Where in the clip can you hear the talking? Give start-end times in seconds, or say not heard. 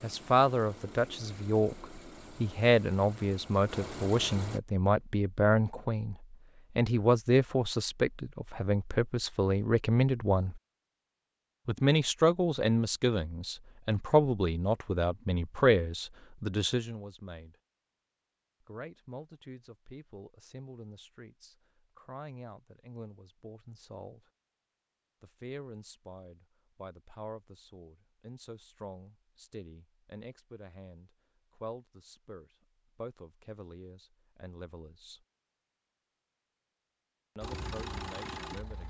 0.0-10.6, 11.7-17.6, 18.6-24.2, 25.2-35.2, 37.4-38.8.